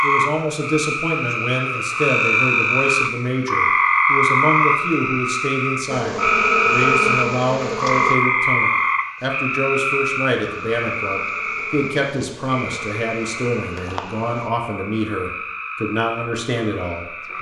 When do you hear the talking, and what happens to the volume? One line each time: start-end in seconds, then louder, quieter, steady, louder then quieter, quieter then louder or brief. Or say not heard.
0.0-17.3 steady.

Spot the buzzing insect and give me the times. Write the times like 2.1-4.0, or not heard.
5.8-8.2, 10.3-14.5.